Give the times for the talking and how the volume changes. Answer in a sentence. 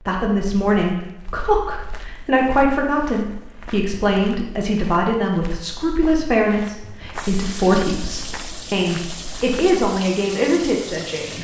You can hear the talking from 0.1 to 11.3 s, at a steady volume.